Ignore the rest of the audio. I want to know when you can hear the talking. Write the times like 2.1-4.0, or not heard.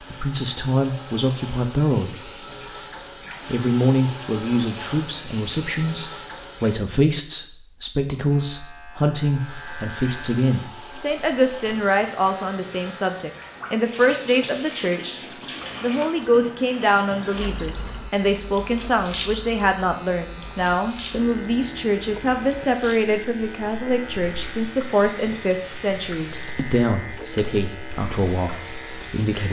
0.0-2.5, 3.5-15.2, 15.8-29.4.